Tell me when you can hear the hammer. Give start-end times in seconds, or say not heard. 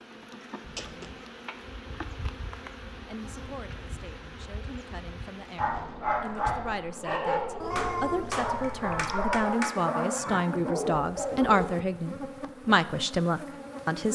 7.8-9.8.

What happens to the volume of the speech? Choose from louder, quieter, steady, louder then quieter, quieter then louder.
louder.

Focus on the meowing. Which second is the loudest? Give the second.
8 s.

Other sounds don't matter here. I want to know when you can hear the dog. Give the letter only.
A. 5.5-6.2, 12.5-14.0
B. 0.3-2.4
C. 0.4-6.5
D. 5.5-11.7
D.